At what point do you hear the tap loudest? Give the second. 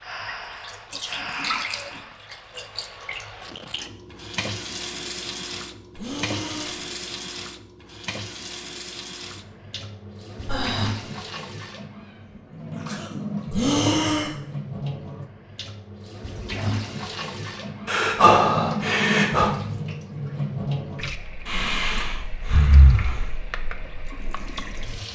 19 s.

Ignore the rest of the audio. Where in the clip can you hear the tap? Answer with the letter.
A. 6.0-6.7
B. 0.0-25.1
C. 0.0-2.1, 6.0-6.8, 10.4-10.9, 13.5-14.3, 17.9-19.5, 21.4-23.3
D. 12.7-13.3
B.